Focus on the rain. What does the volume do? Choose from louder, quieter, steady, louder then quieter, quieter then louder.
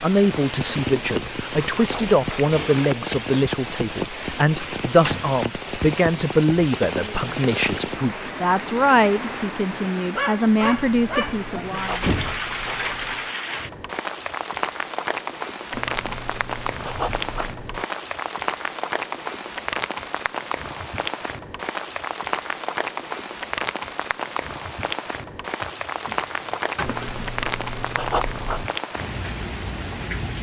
steady.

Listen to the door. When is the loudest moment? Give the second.
12 s.